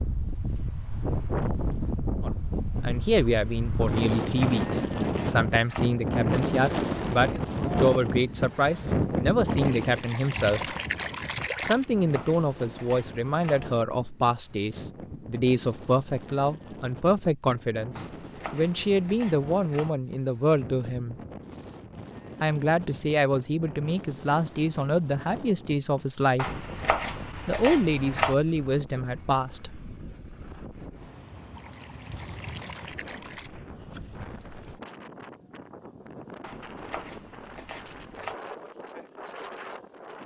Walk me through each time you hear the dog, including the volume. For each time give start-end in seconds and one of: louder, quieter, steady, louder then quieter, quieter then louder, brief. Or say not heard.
not heard.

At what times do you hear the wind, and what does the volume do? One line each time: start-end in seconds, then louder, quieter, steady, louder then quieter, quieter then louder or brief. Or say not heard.
0.0-40.2 quieter.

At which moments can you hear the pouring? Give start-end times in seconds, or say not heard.
9.4-11.8, 31.6-33.5.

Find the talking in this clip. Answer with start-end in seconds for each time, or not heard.
2.2-10.8, 11.6-21.1, 22.4-26.4, 27.4-29.9.